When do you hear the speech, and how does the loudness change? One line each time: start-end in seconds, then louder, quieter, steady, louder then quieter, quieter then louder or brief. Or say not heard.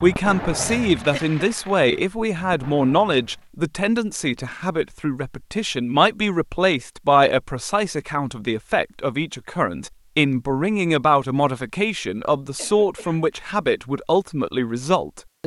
0.0-15.4 steady.